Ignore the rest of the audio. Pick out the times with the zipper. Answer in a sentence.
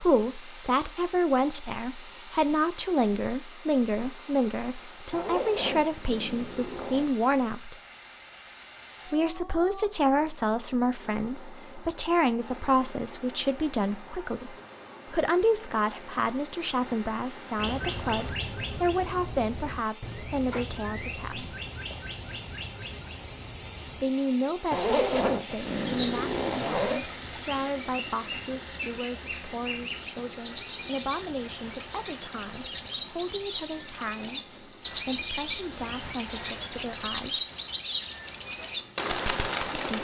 You can hear the zipper from 5.1 to 7.0 s and from 24.7 to 27.1 s.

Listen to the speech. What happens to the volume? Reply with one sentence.
The loudness of the speech goes down.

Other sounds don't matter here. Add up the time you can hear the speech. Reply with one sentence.
The speech can be heard for 34 seconds in total.